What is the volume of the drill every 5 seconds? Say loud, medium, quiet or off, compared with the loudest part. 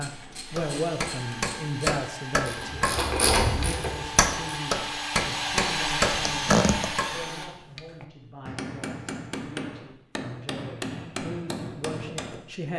medium, loud, off.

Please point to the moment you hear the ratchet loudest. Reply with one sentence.
The loudest moment of the ratchet is at 3 seconds.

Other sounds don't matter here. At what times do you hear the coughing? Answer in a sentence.
You can hear the coughing from 6.0 to 6.9 s.